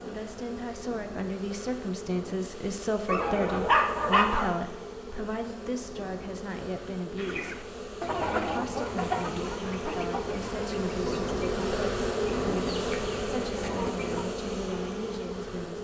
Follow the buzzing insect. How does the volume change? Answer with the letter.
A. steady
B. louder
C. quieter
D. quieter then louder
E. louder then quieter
B.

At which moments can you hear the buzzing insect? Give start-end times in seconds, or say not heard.
0.0-15.7.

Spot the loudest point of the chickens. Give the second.
8 s.